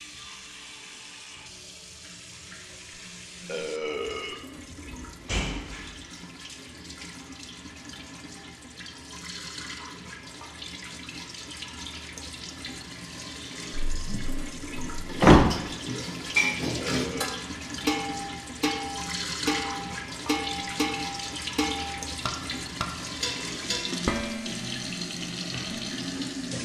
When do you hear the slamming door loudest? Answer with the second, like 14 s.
15 s.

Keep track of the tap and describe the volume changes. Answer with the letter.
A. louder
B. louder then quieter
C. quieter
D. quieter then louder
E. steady
A.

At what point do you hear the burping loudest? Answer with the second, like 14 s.
4 s.